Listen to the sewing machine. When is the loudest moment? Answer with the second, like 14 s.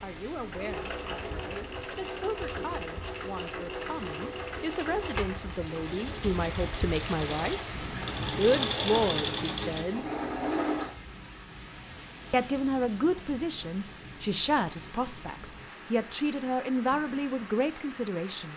9 s.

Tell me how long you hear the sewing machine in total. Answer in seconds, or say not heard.
11 s.